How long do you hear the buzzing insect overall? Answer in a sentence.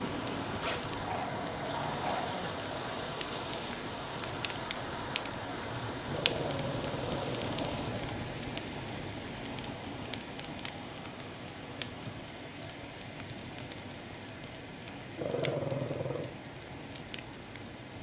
You can't hear the buzzing insect here.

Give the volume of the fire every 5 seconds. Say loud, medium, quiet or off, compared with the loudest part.
medium, loud, medium, medium.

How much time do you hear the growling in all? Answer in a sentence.
You can hear the growling for 5 seconds altogether.